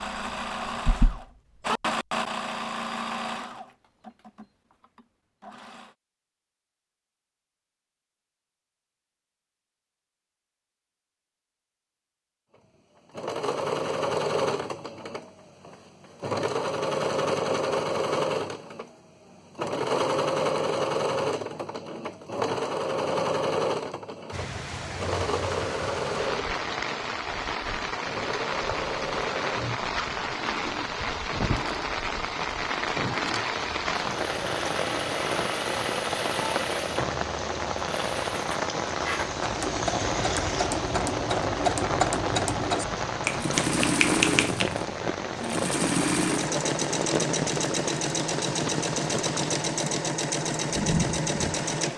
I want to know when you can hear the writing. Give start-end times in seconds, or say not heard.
0.7-1.2.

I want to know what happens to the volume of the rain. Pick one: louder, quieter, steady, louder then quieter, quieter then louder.
steady.